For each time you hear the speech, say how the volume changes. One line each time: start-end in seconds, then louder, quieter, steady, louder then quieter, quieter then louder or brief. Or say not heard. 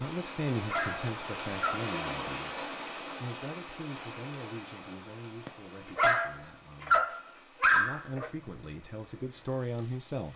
0.0-10.3 quieter then louder.